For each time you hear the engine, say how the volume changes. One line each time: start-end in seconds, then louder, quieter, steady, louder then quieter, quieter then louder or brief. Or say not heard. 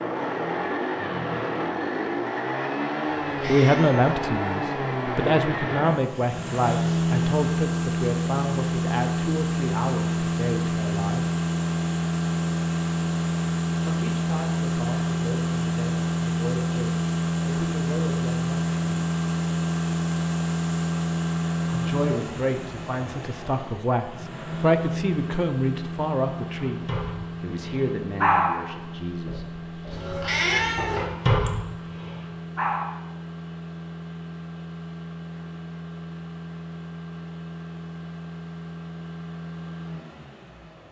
0.0-40.8 quieter.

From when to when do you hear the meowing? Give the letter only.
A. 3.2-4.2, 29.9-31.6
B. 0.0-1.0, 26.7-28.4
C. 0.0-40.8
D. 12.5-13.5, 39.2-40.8
A.